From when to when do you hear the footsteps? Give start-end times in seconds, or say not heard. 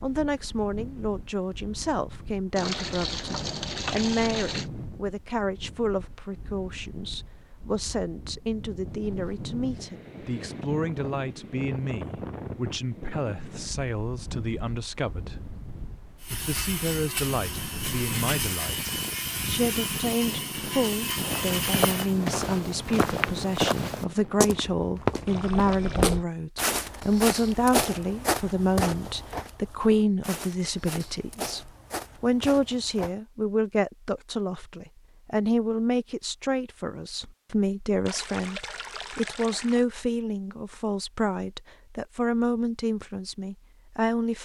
21.2-33.1.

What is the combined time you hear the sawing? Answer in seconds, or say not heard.
6 s.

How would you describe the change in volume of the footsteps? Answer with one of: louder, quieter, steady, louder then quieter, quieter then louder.
quieter.